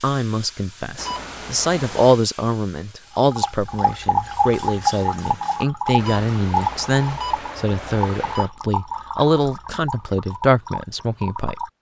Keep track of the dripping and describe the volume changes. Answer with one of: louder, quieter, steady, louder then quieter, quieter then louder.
quieter.